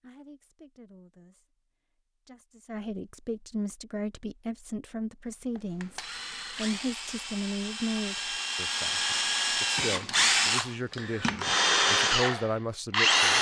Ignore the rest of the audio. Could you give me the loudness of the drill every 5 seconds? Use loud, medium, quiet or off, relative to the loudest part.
off, medium, loud.